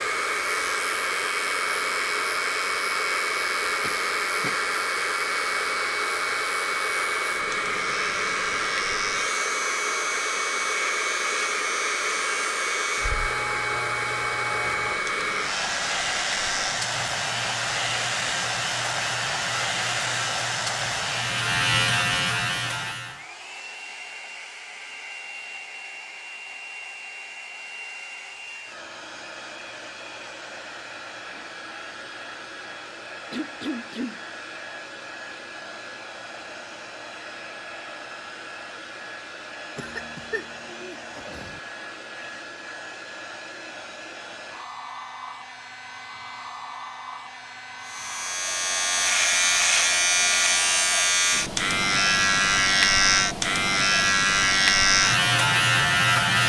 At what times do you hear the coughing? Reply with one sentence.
The coughing can be heard from 3.8 to 4.7 s, from 33.3 to 34.2 s and from 39.8 to 41.6 s.